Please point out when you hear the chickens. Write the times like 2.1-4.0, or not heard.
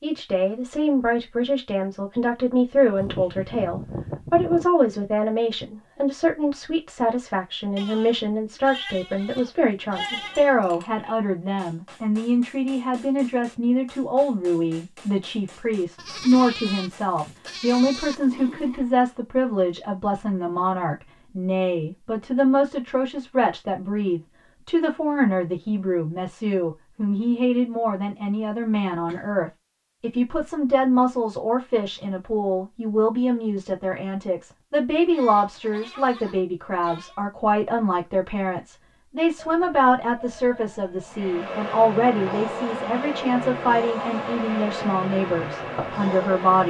not heard.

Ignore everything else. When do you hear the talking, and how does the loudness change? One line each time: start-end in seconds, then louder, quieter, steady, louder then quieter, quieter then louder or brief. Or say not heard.
0.0-46.6 steady.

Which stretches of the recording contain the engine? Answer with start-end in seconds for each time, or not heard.
41.0-46.6.